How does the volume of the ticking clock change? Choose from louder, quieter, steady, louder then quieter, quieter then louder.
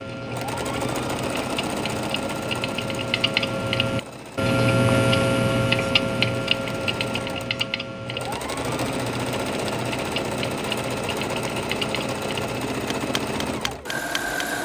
louder then quieter.